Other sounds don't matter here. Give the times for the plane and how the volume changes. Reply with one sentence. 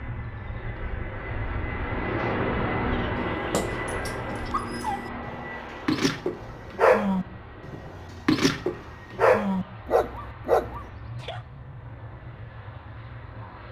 You can hear the plane from 0.0 to 13.6 s, getting quieter.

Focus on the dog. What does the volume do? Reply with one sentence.
The volume of the dog goes up.